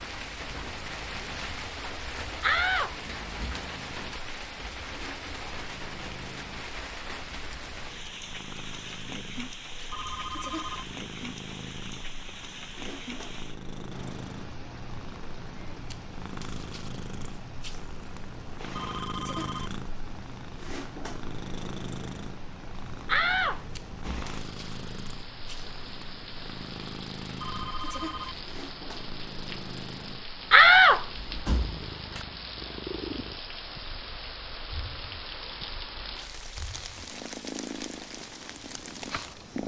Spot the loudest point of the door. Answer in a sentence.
The volume of the door peaks at 31 seconds.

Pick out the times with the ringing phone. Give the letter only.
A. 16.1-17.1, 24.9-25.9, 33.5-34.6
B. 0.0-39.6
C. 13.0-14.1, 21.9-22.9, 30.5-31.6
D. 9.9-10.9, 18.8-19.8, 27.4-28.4
D.